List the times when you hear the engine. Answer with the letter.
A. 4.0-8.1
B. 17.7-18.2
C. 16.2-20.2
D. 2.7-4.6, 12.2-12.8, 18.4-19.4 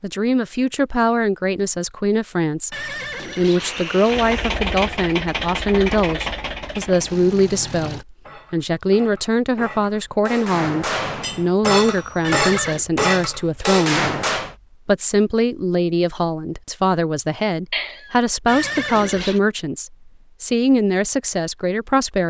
A.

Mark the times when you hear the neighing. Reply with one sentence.
You can hear the neighing from 2.7 to 4.6 s, from 12.2 to 12.8 s and from 18.4 to 19.4 s.